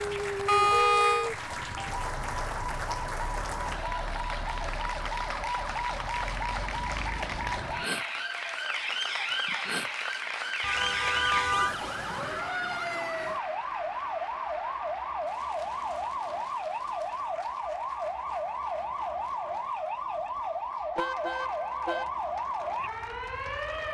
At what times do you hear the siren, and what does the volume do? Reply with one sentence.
The siren can be heard from 0.0 to 23.8 s, at a steady volume.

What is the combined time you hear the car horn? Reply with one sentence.
The car horn can be heard for 3 seconds in total.